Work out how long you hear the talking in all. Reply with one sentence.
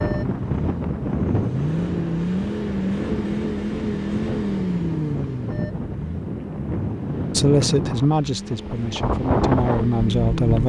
You can hear the talking for 3 seconds altogether.